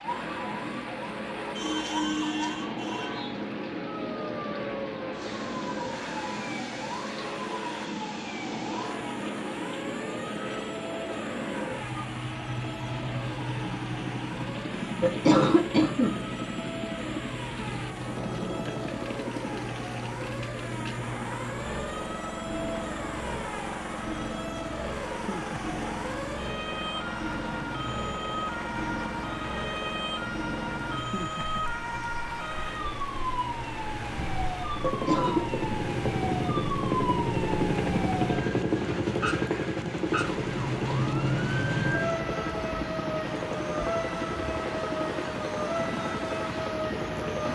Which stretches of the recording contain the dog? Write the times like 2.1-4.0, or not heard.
not heard.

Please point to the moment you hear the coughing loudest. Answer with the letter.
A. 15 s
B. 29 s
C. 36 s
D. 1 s
A.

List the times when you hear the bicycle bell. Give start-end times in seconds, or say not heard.
not heard.